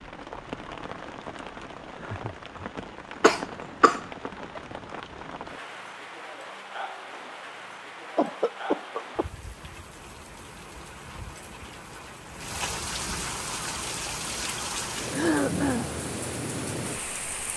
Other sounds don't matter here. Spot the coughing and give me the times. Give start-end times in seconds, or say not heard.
3.2-4.0, 8.2-9.2, 15.1-15.9.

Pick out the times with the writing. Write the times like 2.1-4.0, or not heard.
not heard.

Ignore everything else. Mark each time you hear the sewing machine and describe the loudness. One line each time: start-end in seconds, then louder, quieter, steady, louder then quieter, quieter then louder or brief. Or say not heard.
not heard.